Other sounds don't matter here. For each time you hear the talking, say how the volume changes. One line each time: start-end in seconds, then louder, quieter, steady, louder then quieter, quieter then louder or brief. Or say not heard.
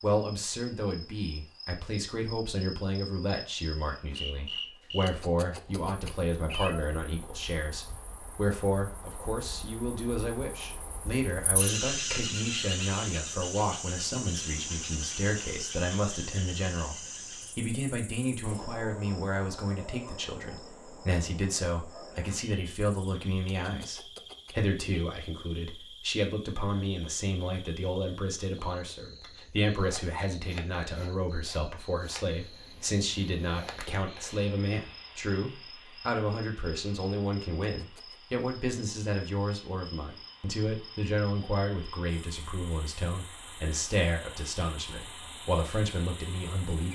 0.0-46.9 steady.